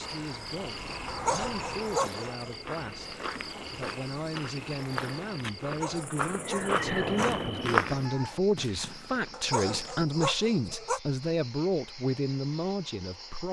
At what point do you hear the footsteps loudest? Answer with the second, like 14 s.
8 s.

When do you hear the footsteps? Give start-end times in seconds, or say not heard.
2.6-8.1.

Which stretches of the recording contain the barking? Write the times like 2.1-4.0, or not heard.
1.1-2.5, 5.6-7.4, 9.3-11.0.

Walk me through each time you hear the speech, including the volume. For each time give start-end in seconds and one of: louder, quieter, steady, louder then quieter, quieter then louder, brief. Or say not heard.
0.0-13.4 louder.